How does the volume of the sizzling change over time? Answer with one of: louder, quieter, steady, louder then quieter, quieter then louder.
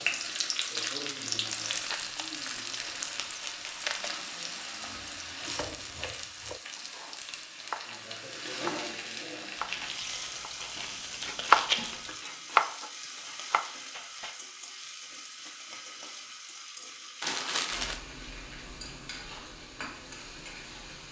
quieter.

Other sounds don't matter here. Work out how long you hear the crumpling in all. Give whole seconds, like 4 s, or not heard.
6 s.